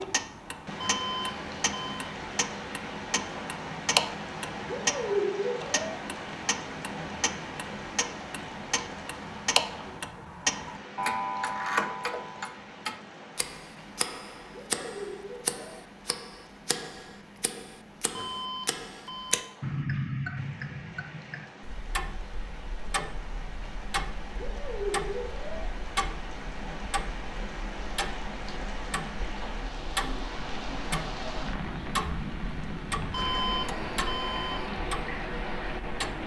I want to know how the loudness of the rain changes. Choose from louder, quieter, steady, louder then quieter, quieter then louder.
quieter then louder.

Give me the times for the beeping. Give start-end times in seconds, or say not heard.
0.8-2.1, 18.1-19.6, 33.1-34.7.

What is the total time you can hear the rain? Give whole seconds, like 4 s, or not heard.
36 s.